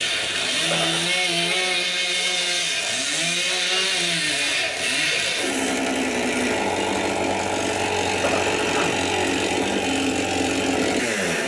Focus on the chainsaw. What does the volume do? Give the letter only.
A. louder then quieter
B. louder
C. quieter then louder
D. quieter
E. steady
E.